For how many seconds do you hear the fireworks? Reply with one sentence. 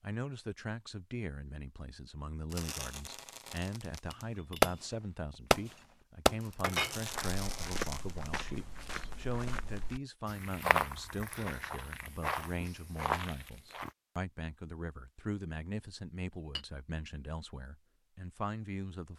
The fireworks can be heard for 5 seconds in total.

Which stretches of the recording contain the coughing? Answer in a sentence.
You can't hear the coughing here.